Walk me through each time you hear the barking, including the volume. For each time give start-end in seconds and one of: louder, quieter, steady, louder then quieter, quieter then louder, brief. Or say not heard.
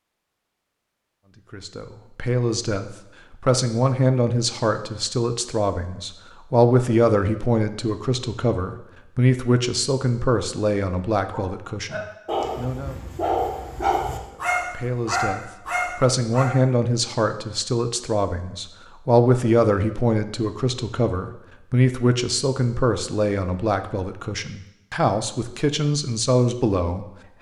11.3-16.6 steady.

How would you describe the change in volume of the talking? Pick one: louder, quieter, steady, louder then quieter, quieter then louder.
steady.